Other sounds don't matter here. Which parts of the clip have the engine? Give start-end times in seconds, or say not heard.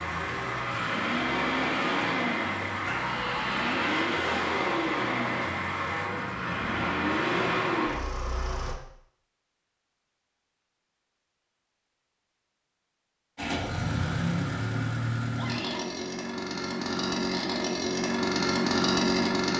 0.0-8.8, 13.3-19.5.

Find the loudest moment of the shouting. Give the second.
3 s.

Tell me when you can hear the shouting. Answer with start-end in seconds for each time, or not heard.
2.9-3.8, 15.3-16.0.